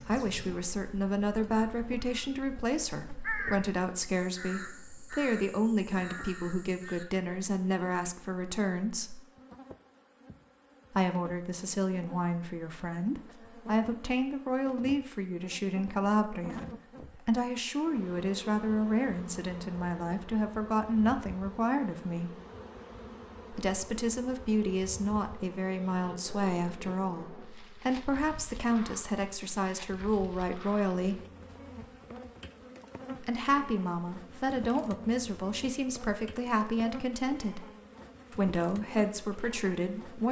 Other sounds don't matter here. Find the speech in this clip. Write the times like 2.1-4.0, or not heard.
0.0-9.2, 10.9-22.4, 23.5-31.2, 33.2-37.7, 38.3-40.2.